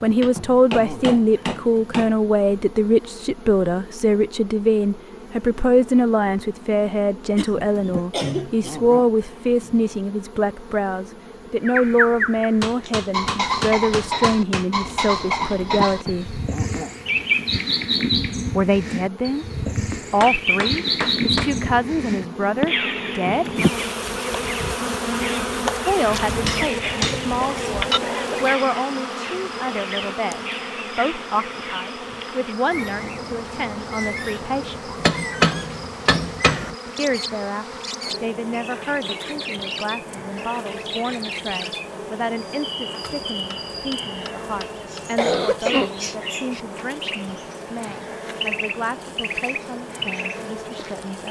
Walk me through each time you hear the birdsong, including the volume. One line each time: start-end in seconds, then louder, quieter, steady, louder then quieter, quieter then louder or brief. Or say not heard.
11.7-51.2 quieter.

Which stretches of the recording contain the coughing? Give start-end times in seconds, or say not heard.
7.3-8.8, 26.9-28.4, 45.1-46.0.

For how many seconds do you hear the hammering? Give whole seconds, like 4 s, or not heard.
11 s.